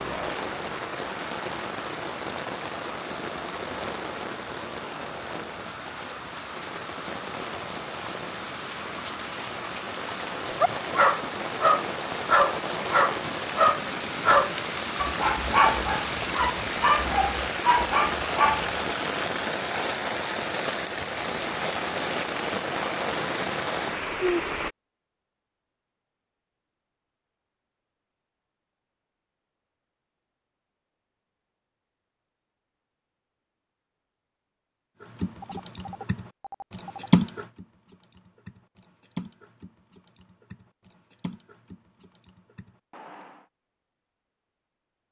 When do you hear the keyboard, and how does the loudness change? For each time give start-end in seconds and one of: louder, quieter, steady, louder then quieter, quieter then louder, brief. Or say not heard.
35.0-43.5 louder then quieter.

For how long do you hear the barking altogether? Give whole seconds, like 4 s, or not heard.
8 s.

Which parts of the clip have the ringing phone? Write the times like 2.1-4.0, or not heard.
35.4-37.1.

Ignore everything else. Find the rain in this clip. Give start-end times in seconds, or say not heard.
0.0-24.8.